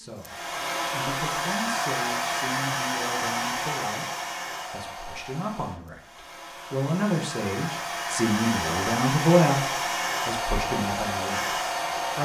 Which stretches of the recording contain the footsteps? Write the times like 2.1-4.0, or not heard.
not heard.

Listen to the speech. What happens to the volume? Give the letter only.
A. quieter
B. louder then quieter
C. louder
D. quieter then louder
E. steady
C.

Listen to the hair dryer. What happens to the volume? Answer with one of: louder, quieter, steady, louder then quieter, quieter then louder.
quieter then louder.